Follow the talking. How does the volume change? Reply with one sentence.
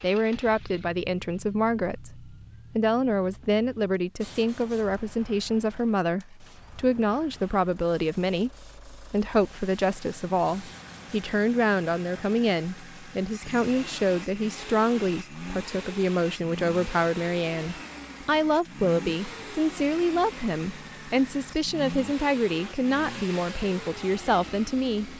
The loudness of the talking stays about the same.